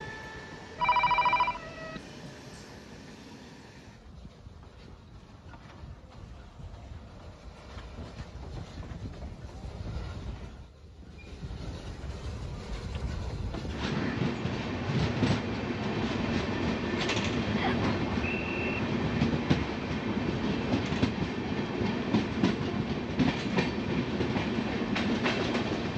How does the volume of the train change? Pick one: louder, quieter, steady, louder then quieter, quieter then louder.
louder.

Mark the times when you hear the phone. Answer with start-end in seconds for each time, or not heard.
0.8-2.0.